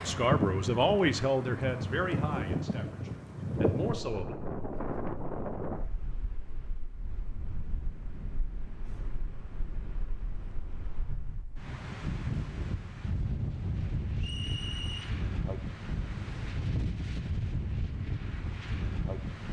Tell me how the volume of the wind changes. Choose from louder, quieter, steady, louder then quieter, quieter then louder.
quieter then louder.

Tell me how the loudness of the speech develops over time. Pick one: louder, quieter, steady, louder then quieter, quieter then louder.
quieter then louder.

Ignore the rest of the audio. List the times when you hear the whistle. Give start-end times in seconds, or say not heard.
14.2-15.1.